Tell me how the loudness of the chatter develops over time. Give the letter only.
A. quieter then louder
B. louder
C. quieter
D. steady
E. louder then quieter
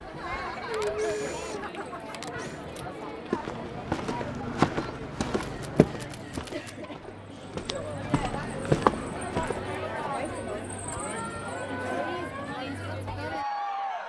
A.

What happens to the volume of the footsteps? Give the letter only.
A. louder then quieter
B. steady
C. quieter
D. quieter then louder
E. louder
D.